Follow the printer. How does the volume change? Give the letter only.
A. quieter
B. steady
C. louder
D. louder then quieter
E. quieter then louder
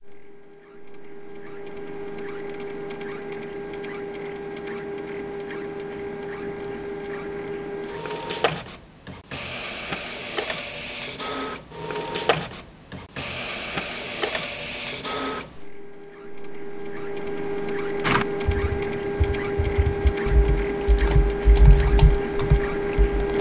C.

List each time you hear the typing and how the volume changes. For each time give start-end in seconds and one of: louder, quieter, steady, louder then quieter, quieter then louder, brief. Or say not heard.
18.0-23.3 louder.